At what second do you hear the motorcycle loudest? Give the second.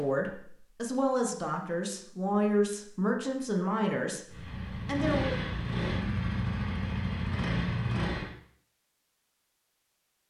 8 s.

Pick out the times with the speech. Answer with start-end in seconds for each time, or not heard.
0.0-5.4.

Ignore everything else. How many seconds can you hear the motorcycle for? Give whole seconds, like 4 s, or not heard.
4 s.